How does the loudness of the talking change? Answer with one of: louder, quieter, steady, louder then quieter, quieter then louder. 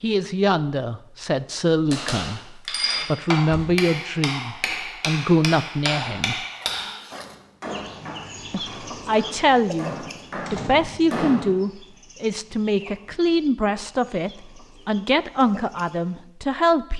steady.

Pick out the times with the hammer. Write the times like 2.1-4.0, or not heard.
1.9-11.5.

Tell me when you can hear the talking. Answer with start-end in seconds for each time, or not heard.
0.0-6.4, 8.5-16.9.